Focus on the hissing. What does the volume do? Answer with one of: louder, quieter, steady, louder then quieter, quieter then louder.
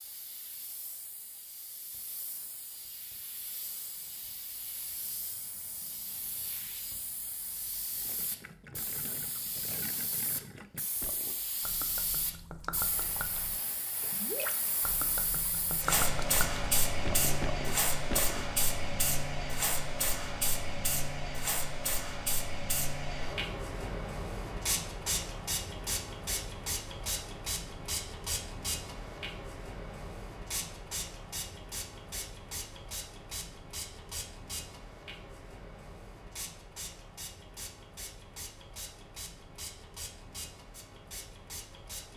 louder then quieter.